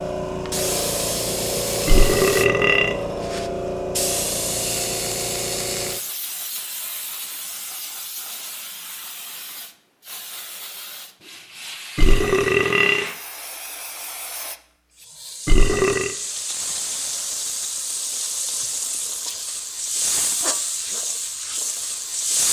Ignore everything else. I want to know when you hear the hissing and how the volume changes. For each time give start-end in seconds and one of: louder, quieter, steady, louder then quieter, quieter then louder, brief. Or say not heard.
0.0-22.4 quieter then louder.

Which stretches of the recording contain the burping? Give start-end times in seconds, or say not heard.
1.9-3.0, 11.9-13.1, 15.4-16.1.